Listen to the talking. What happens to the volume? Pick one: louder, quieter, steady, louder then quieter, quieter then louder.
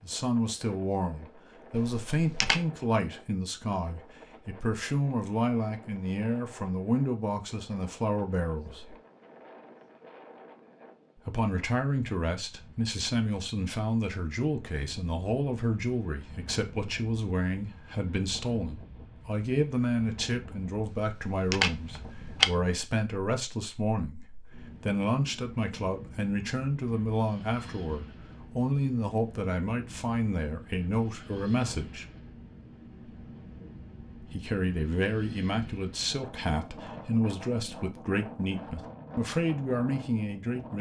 steady.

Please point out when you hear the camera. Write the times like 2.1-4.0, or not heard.
1.8-2.6, 20.9-22.5.